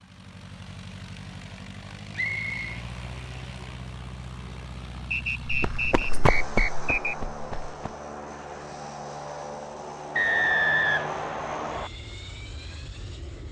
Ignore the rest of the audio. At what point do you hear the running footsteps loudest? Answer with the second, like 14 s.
6 s.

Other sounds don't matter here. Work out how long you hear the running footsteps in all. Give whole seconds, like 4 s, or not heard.
2 s.